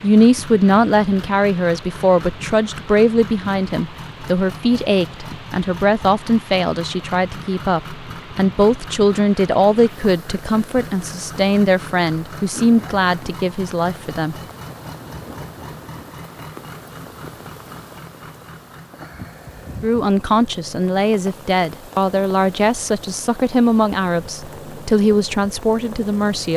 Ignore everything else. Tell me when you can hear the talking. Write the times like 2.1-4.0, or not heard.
0.0-14.3, 19.8-26.5.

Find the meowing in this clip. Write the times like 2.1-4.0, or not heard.
not heard.